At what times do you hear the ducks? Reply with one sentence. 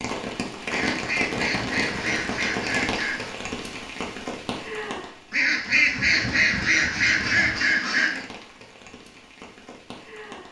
You can hear the ducks from 0.7 to 3.4 s and from 5.3 to 8.2 s.